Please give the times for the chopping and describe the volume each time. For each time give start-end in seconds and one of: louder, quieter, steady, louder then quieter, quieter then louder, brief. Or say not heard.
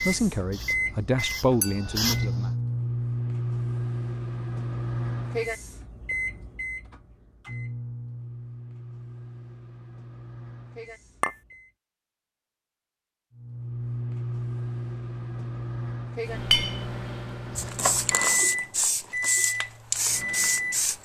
not heard.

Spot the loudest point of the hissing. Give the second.
18 s.